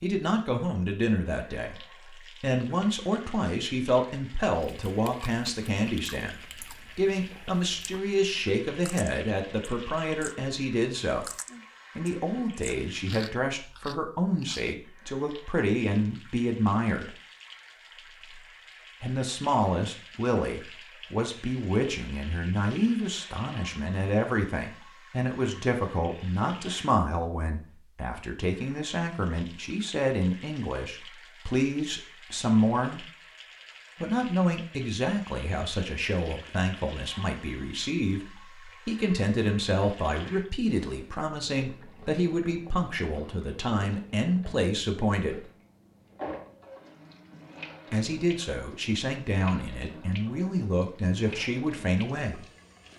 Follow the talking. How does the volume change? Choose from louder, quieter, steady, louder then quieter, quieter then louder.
steady.